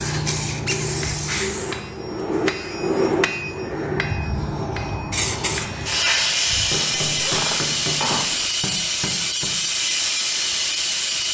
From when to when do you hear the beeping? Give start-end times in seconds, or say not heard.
not heard.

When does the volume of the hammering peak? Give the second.
3 s.